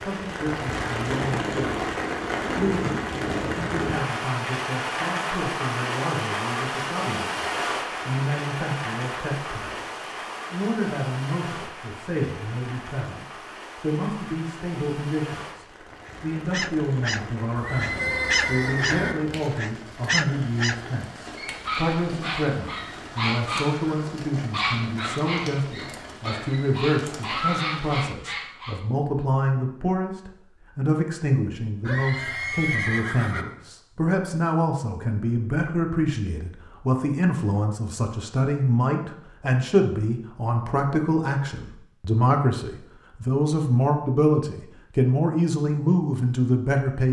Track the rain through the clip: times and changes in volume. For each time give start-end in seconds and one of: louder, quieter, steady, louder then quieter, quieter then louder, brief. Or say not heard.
0.0-28.1 quieter.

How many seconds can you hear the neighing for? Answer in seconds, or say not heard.
3 s.